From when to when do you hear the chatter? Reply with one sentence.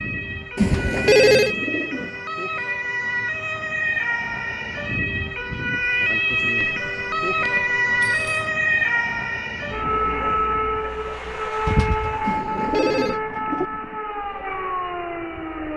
The chatter can't be heard in this clip.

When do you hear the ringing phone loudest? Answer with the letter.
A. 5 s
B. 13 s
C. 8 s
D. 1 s
D.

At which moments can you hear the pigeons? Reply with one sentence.
You can hear the pigeons from 0.6 to 2.2 s and from 11.7 to 13.7 s.